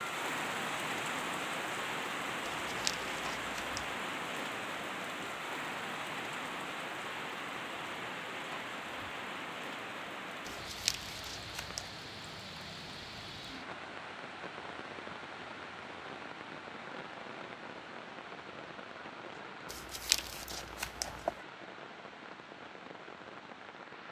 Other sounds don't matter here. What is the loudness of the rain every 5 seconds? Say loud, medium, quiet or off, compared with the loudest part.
loud, loud, medium, medium, medium.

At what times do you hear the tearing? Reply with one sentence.
The tearing can be heard from 2.5 to 3.9 s, from 10.4 to 11.8 s and from 19.7 to 21.4 s.